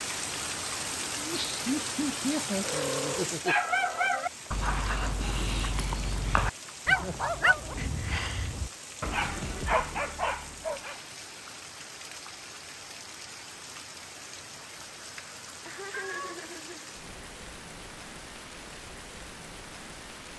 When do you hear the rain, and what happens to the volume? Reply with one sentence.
You can hear the rain from 0.0 to 20.3 s, getting quieter.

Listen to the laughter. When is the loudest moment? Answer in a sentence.
The volume of the laughter peaks at 2 seconds.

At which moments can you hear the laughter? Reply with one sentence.
The laughter can be heard from 1.1 to 3.5 s, from 7.8 to 8.6 s and from 15.7 to 16.9 s.